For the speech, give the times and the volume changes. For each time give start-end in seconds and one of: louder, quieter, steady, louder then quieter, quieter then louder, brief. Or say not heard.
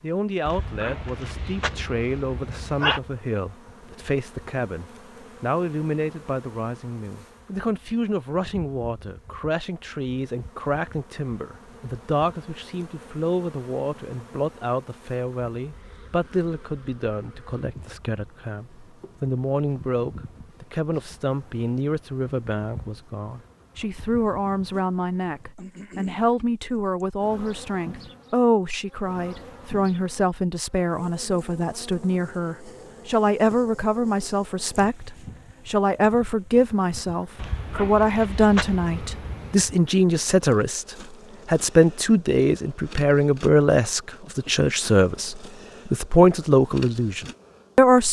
0.0-48.0 louder.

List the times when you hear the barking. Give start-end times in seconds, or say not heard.
0.5-3.0, 37.4-39.7.